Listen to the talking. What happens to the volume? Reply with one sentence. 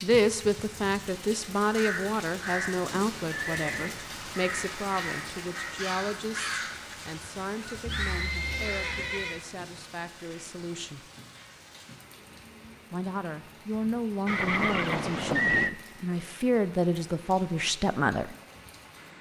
The loudness of the talking goes down, then up.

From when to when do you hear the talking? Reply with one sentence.
You can hear the talking from 0.0 to 11.1 s and from 12.9 to 18.4 s.